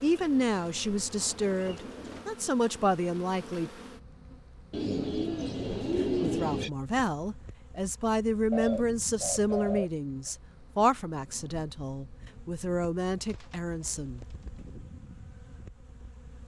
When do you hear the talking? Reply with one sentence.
You can hear the talking from 0.0 to 3.7 s and from 6.0 to 14.2 s.